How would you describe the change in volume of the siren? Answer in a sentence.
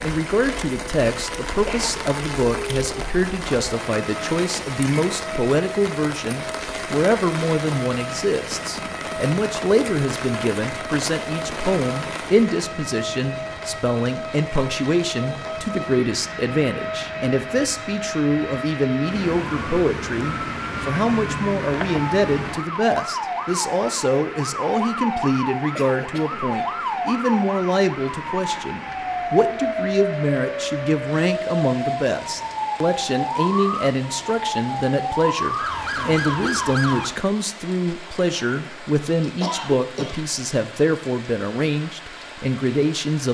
The loudness of the siren goes up.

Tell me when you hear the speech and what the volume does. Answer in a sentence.
You can hear the speech from 0.0 to 43.2 s, at a steady volume.